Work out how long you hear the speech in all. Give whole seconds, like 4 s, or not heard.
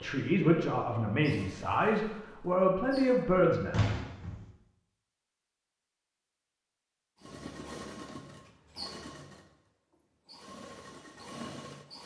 4 s.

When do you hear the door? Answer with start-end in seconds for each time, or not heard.
3.3-4.5.